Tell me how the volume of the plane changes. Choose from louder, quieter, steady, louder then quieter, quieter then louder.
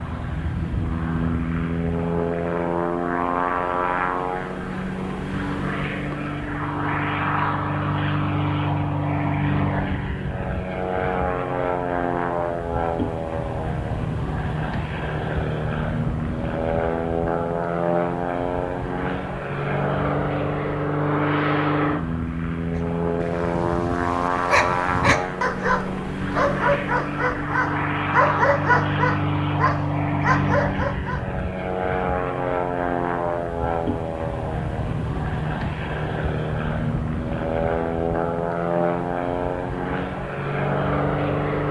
steady.